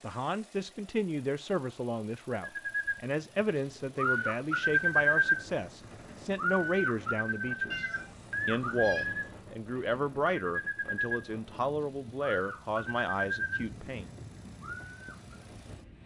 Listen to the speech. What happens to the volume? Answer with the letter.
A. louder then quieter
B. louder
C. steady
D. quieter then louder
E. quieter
C.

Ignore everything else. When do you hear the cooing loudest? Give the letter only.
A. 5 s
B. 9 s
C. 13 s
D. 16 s
A.